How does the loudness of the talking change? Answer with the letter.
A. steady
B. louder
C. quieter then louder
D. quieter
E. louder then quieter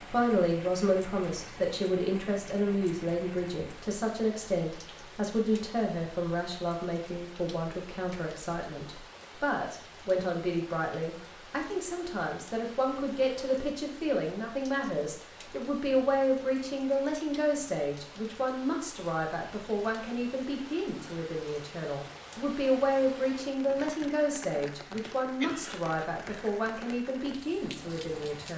A.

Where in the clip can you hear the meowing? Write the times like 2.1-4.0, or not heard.
not heard.